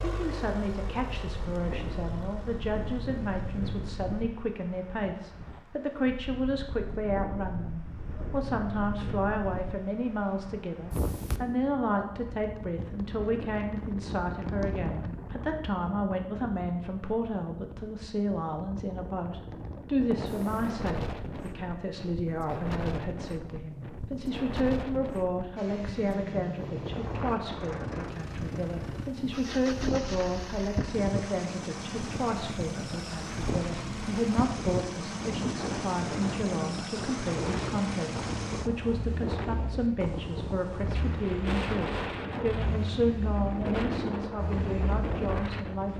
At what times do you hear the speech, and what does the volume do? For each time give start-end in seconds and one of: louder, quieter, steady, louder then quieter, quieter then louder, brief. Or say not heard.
0.0-45.9 steady.